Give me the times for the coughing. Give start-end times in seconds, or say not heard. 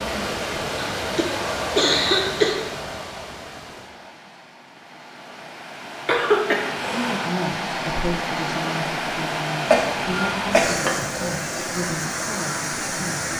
0.9-2.5, 6.0-7.2, 9.7-11.0.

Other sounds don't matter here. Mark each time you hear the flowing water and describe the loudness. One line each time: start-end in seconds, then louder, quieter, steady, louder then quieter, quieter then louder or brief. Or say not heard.
0.0-13.3 quieter then louder.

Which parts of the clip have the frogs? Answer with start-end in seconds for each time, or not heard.
not heard.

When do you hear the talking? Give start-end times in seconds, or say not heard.
6.9-13.3.